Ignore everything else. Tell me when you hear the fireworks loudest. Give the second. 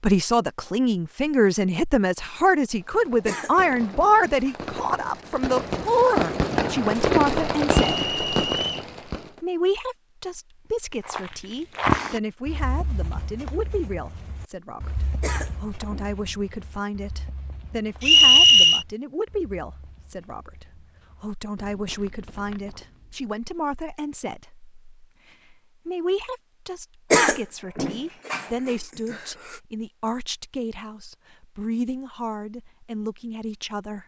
7 s.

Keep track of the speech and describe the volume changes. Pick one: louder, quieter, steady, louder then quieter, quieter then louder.
quieter.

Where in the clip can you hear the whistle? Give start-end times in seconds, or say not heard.
7.8-8.8, 18.0-18.9.